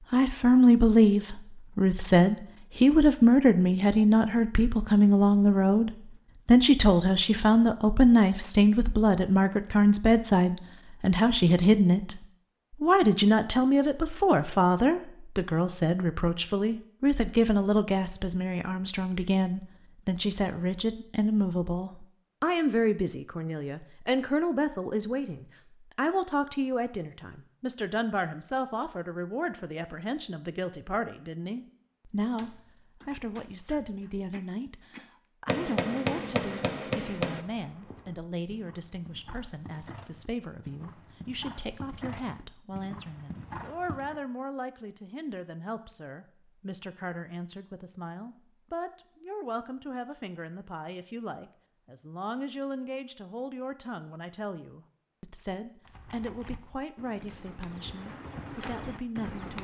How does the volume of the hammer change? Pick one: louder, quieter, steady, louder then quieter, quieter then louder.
louder.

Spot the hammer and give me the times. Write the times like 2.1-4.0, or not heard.
32.4-37.5.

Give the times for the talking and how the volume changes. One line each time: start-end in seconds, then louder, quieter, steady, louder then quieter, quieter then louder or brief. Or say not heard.
0.1-59.5 quieter.